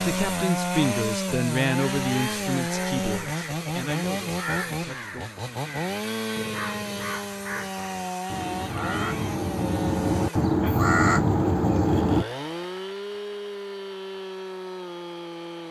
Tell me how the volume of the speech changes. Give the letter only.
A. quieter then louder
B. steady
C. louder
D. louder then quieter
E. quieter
E.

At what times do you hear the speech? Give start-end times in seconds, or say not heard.
0.0-5.3.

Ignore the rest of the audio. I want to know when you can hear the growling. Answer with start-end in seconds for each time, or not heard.
not heard.